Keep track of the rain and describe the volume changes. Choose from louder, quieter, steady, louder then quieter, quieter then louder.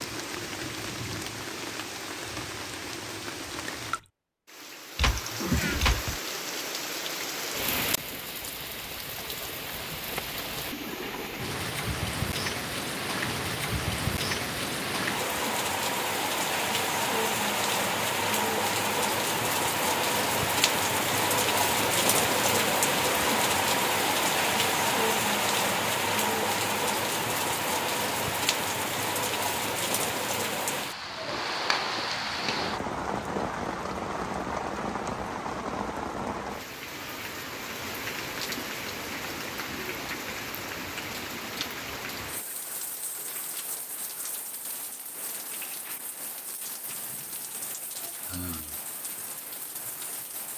louder then quieter.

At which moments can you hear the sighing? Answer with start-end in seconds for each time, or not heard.
48.0-48.8.